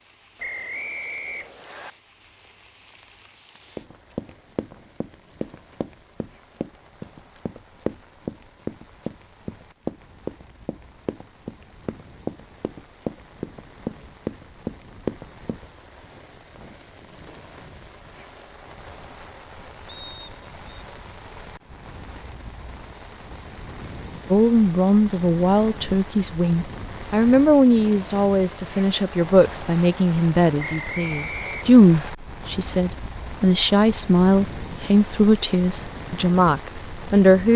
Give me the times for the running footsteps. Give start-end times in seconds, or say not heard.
3.8-15.7.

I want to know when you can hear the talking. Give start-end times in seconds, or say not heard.
24.3-37.5.